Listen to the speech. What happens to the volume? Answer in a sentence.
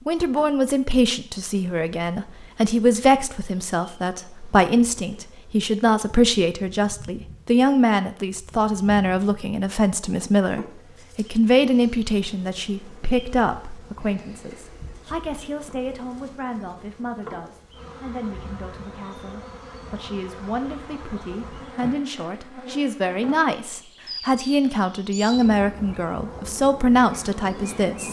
The loudness of the speech goes down, then up.